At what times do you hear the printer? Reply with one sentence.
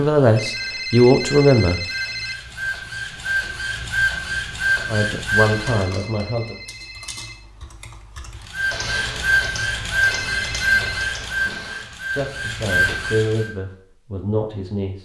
The printer can be heard from 0.0 to 5.8 s and from 8.5 to 13.5 s.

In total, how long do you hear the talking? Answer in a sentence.
The talking can be heard for 6 seconds in total.